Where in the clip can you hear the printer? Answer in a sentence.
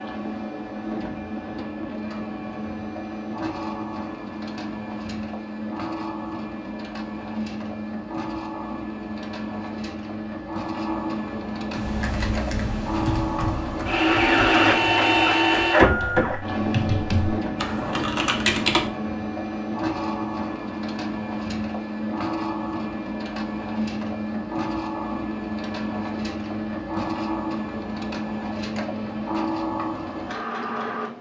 You can hear the printer from 0.0 to 31.1 s.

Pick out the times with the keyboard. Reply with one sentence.
You can hear the keyboard from 11.7 to 18.9 s.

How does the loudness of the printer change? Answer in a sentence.
The loudness of the printer goes up, then down.